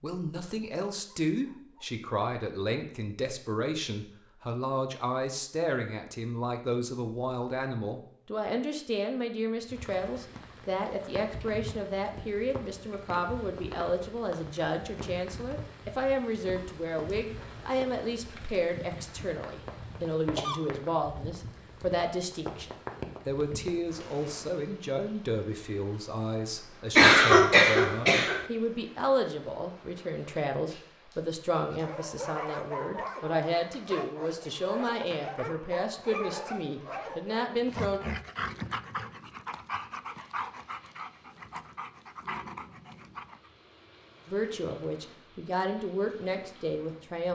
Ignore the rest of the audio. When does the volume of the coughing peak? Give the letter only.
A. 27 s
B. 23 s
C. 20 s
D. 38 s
A.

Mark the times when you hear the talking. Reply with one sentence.
The talking can be heard from 0.0 to 38.0 s and from 44.2 to 47.3 s.